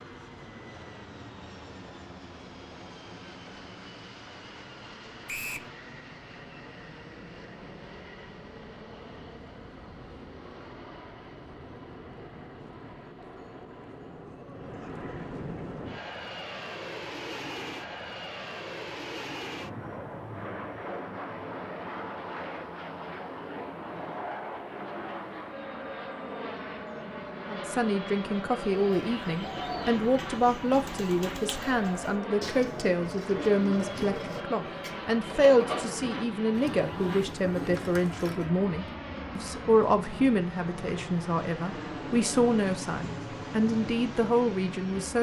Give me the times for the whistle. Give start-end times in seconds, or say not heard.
5.2-5.7.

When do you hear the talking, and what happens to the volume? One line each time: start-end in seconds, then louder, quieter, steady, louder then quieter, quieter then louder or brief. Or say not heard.
27.4-45.1 steady.